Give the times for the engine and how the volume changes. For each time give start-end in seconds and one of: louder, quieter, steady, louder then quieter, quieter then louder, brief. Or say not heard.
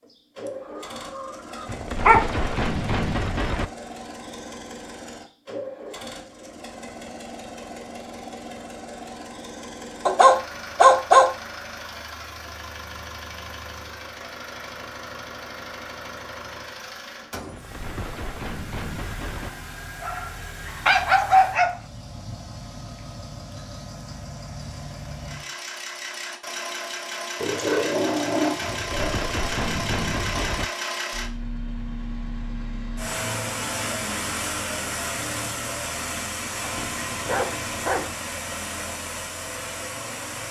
0.0-40.4 louder.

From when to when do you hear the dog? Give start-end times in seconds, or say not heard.
1.1-2.2, 10.1-11.3, 20.0-21.8, 27.4-29.2, 36.6-38.1.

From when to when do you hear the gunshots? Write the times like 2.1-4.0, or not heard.
1.6-3.7, 17.5-19.5, 28.6-30.6.